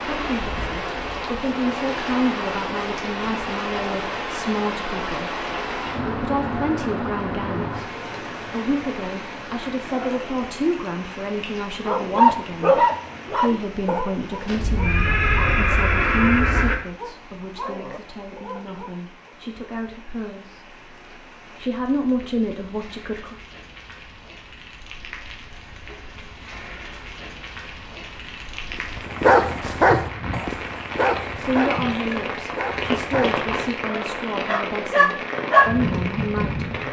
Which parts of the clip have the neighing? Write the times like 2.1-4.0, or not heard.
14.4-16.8.